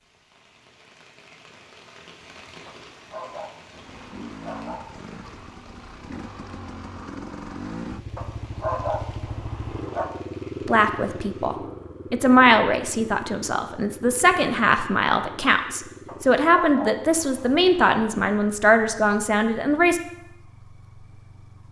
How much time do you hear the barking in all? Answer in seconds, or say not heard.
6 s.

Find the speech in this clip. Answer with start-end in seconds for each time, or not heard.
10.7-20.0.